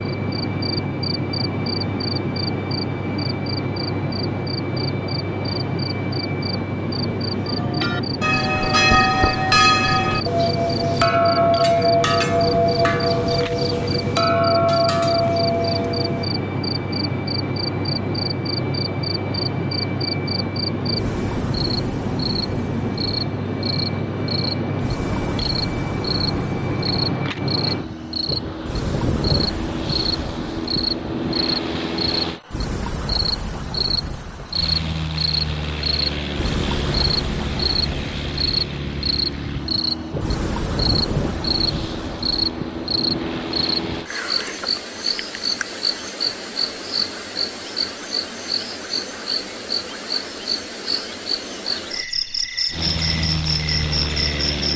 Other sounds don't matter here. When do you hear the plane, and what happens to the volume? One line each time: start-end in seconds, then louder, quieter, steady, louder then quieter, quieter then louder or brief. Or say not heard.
0.0-32.4 steady
34.5-44.1 steady
52.7-54.7 brief.